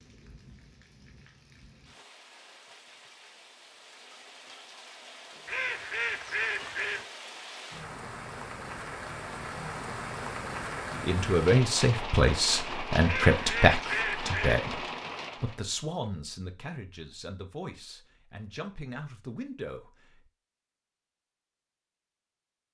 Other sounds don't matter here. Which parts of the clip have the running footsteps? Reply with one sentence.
The running footsteps can't be heard in this clip.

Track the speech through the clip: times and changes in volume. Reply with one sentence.
You can hear the speech from 10.9 to 20.2 s, getting quieter.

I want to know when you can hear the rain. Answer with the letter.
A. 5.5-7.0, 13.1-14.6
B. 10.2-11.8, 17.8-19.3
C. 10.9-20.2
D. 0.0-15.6
D.